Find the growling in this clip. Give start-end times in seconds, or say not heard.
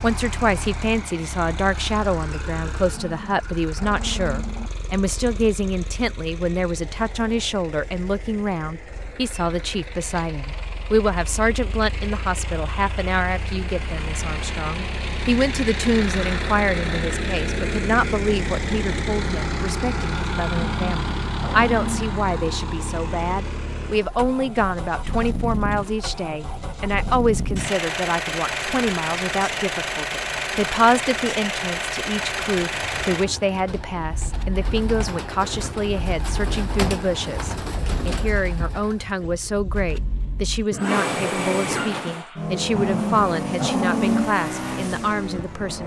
2.9-4.7, 20.5-22.1, 42.7-44.3.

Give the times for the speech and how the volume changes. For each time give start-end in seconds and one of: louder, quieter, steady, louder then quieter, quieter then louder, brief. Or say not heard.
0.0-45.8 steady.